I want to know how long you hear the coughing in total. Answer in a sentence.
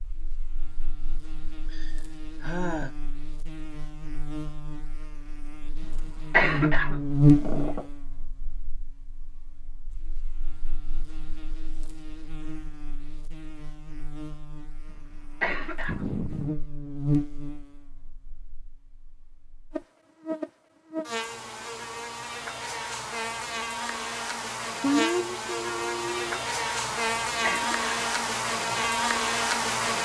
You can hear the coughing for 3 seconds altogether.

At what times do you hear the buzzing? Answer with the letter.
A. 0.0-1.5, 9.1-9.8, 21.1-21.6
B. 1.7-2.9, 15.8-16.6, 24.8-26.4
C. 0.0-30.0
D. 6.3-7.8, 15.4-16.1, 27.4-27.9
C.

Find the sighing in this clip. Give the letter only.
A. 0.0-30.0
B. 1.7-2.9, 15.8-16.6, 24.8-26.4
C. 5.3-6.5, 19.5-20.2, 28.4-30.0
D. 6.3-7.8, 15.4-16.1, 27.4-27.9
B.